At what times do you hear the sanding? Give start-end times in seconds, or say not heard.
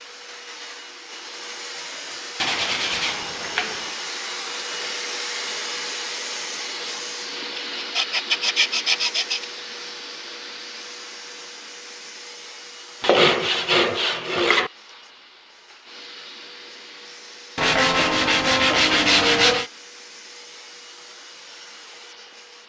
2.4-3.9, 7.5-9.4, 13.0-14.7, 17.6-19.7.